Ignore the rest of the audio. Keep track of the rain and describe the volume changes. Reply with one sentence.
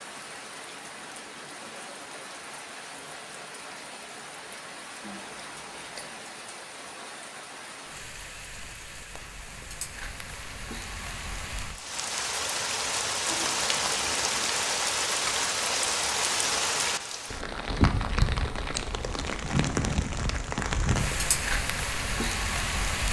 The loudness of the rain goes up.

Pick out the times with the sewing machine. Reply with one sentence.
The sewing machine can't be heard in this clip.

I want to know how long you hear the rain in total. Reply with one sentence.
The rain can be heard for 23 seconds in total.